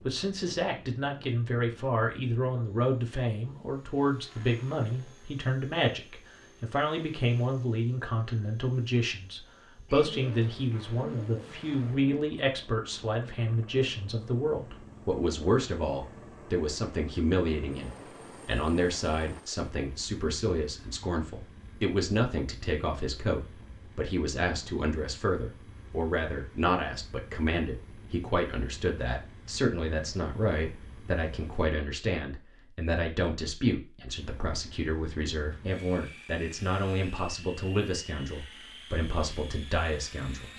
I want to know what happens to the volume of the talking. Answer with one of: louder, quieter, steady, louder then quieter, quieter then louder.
steady.